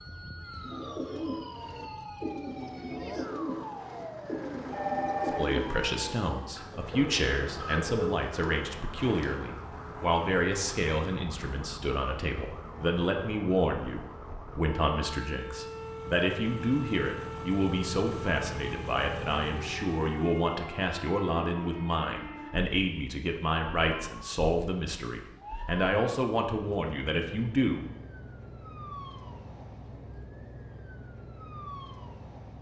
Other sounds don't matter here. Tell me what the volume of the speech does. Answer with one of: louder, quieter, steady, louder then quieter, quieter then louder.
steady.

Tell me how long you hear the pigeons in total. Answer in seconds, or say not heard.
9 s.